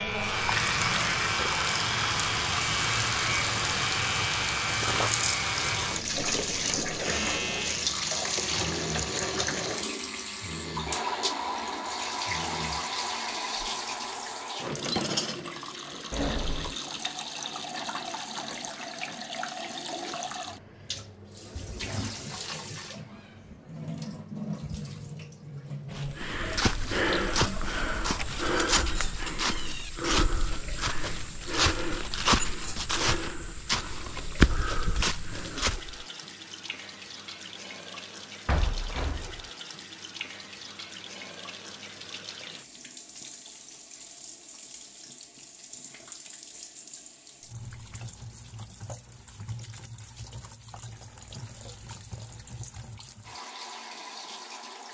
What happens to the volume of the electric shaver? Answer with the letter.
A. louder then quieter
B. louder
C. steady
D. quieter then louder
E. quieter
E.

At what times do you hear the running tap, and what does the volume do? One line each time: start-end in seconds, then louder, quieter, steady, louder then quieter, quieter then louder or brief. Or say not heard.
0.0-54.8 quieter.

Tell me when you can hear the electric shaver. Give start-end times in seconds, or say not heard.
0.0-14.6.